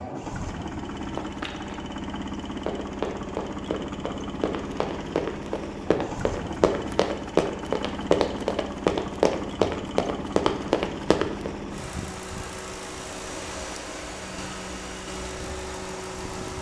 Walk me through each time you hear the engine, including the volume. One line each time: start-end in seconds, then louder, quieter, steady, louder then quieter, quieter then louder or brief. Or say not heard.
0.0-16.5 steady.